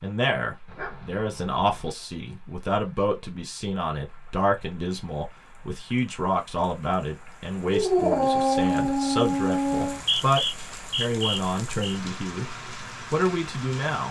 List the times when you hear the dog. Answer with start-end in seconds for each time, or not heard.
0.7-1.9, 7.7-10.0.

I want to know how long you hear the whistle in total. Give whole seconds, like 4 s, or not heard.
2 s.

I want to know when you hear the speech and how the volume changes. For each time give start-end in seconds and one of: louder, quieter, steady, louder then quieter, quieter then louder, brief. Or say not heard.
0.0-14.0 steady.